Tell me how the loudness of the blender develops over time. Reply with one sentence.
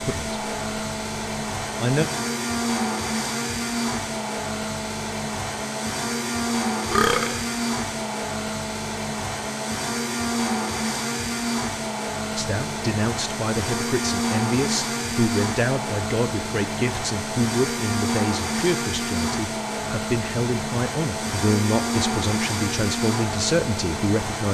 The loudness of the blender stays about the same.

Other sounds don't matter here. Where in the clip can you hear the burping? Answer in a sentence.
The burping can be heard from 6.9 to 7.3 s.